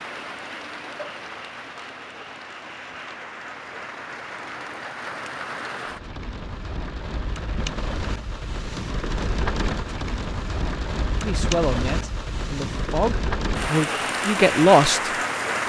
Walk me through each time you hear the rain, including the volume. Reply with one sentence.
You can hear the rain from 0.0 to 15.6 s, getting louder.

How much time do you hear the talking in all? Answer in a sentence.
The talking can be heard for 4 seconds in total.